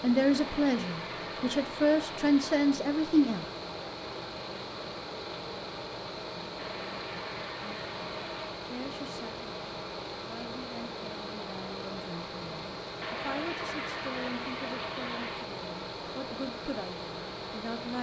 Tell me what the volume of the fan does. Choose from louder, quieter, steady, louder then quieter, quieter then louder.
steady.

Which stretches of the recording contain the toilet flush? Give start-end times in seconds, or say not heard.
0.3-2.6, 6.5-8.6, 13.0-15.6.